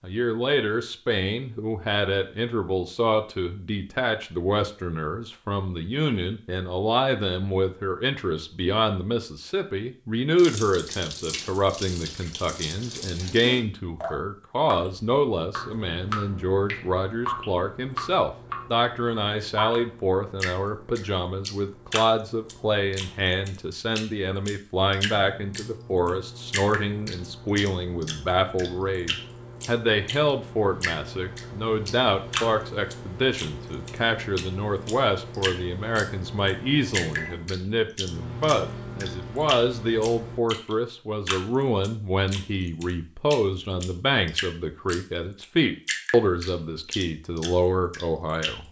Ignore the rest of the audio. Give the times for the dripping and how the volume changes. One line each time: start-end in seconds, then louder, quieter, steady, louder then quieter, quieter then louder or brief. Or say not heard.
10.3-48.5 steady.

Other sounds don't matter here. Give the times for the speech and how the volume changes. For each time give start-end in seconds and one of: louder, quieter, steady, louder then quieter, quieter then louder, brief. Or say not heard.
0.0-48.6 steady.